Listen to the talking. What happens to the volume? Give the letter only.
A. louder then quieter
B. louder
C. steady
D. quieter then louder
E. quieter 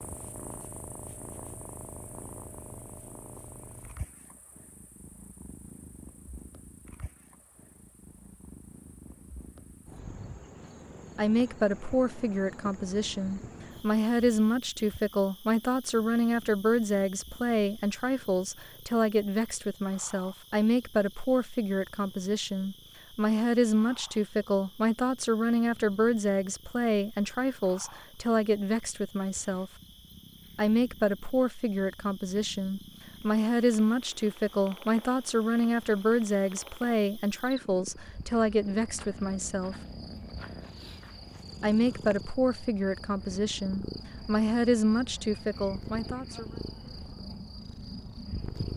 C.